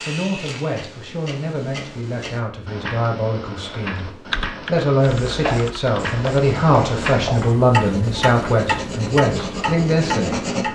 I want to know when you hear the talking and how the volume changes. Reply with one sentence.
You can hear the talking from 0.1 to 10.5 s, getting louder.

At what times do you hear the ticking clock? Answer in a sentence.
The ticking clock can be heard from 0.0 to 10.7 s.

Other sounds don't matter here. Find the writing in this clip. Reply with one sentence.
You can hear the writing from 5.0 to 10.7 s.